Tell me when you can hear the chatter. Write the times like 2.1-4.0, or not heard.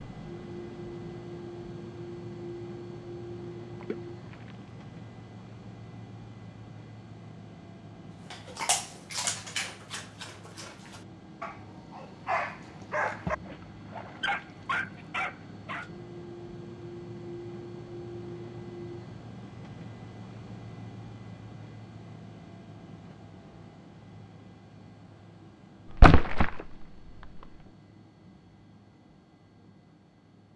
not heard.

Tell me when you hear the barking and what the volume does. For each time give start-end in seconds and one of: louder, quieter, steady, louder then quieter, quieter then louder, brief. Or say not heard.
8.3-15.9 quieter then louder.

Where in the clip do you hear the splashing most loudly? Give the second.
26 s.